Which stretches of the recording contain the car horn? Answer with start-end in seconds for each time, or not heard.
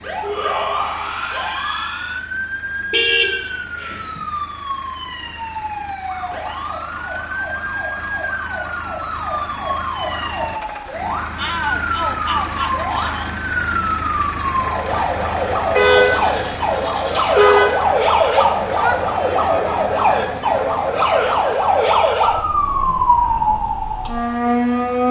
2.9-4.2, 15.8-17.7.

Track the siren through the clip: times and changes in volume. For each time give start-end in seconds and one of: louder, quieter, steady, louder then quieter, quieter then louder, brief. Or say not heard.
0.0-25.0 louder.